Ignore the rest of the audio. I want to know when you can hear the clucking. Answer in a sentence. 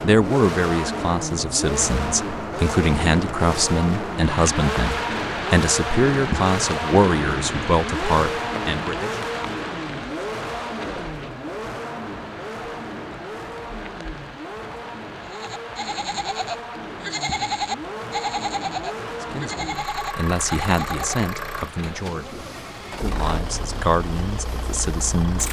The clucking can't be heard in this clip.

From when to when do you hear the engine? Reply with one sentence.
The engine can be heard from 0.0 to 25.4 s.